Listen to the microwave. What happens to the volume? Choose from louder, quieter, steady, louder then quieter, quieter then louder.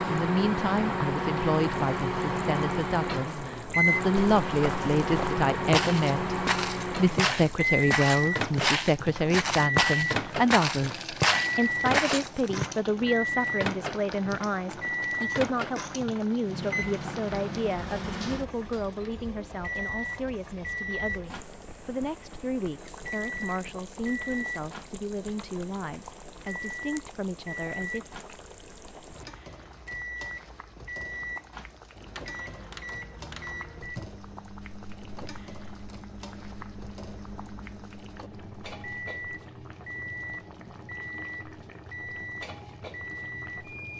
quieter.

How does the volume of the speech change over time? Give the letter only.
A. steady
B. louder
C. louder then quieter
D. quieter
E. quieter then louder
D.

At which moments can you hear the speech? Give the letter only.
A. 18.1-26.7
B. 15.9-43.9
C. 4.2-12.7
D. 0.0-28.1
D.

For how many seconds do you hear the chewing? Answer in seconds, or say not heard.
not heard.